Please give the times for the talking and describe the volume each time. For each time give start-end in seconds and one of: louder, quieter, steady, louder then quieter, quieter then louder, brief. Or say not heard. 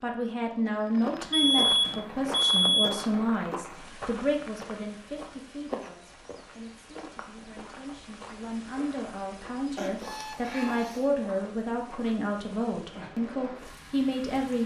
0.0-14.6 quieter then louder.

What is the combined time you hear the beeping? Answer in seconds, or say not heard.
3 s.